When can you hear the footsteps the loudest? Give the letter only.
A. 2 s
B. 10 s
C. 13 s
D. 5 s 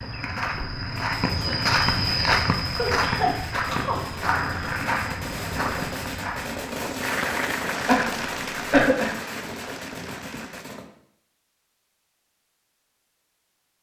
A.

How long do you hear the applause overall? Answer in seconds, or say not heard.
4 s.